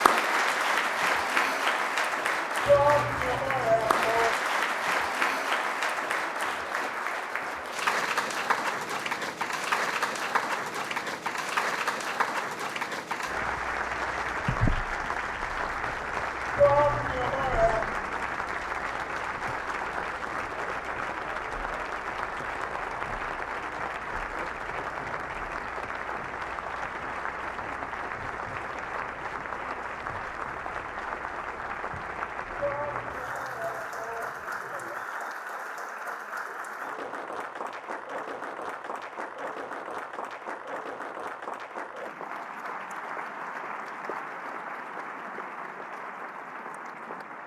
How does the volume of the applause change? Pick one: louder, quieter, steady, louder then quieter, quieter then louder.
quieter.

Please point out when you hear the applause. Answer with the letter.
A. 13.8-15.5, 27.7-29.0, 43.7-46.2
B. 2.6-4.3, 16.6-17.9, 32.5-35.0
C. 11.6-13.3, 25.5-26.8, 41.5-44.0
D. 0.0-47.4
D.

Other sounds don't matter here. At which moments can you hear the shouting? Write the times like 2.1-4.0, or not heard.
2.6-4.3, 16.6-17.9, 32.5-35.0.